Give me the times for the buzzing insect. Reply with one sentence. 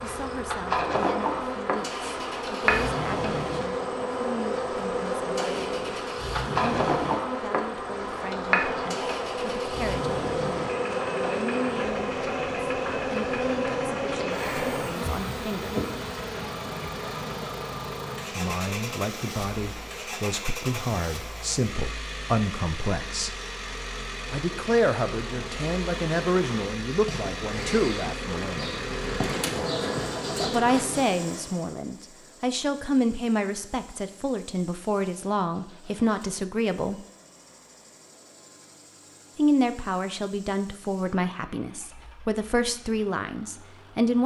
You can hear the buzzing insect from 0.0 to 31.1 s.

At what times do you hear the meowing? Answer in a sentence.
You can hear the meowing from 29.2 to 29.9 s.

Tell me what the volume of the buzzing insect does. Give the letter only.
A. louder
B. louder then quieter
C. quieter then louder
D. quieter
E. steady
C.